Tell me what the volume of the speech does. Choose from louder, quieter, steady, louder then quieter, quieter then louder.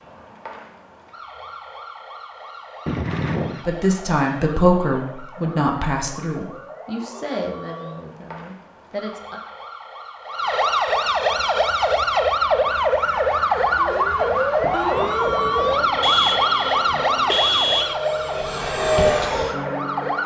quieter.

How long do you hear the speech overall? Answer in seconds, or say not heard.
6 s.